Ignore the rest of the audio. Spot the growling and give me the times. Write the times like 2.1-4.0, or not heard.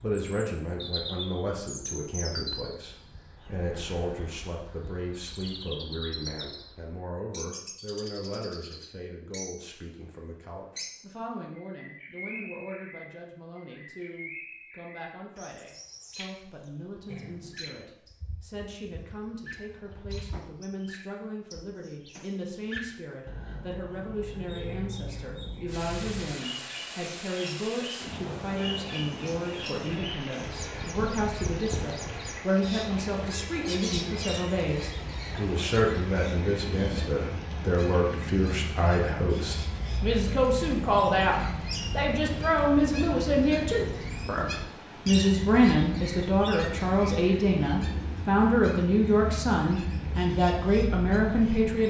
17.1-17.9.